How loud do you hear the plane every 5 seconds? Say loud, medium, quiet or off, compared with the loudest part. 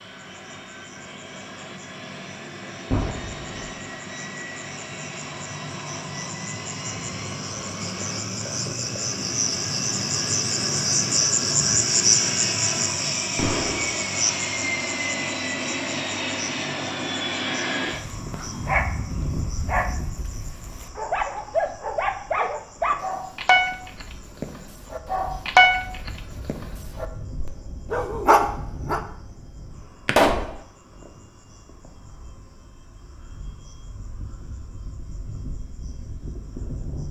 medium, medium, loud, loud, quiet, quiet, quiet, medium.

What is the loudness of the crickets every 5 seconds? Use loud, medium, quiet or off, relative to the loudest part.
quiet, medium, loud, quiet, quiet, quiet, quiet, quiet.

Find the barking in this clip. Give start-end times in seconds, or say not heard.
18.1-29.0.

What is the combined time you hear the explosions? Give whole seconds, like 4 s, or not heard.
2 s.